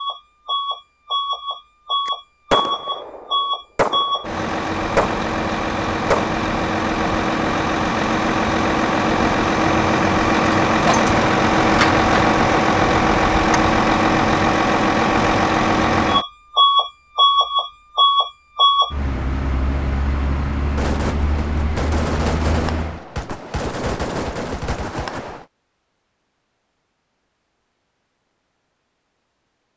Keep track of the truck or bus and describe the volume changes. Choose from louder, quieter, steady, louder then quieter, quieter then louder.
louder then quieter.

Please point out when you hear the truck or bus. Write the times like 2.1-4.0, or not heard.
0.0-23.0.